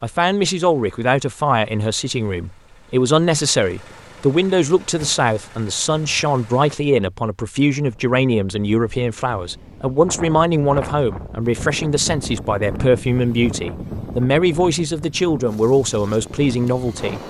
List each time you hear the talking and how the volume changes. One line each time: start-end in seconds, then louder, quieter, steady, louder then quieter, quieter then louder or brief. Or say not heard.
0.0-17.2 steady.